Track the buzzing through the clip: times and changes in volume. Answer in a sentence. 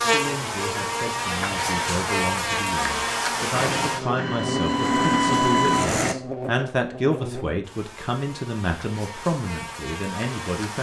The buzzing can be heard from 0.0 to 10.7 s, getting quieter.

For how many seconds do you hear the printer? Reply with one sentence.
You can hear the printer for 3 seconds altogether.